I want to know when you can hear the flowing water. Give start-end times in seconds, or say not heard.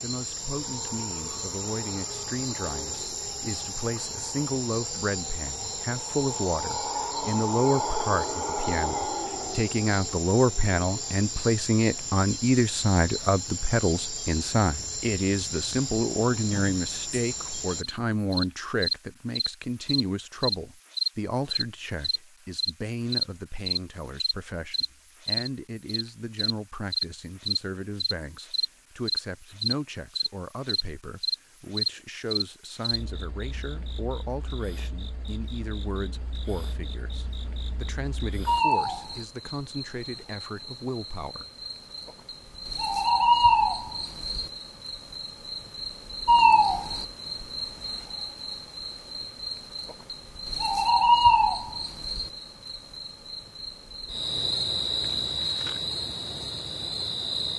not heard.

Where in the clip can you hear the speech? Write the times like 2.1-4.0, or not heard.
0.0-41.5.